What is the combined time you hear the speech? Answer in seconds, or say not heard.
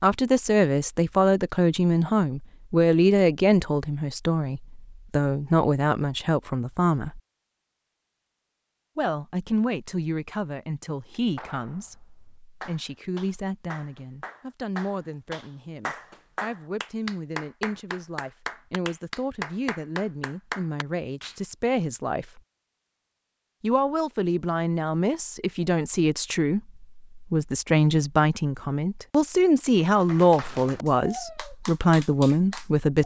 30 s.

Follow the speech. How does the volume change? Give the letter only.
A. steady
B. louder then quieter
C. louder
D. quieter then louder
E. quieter
D.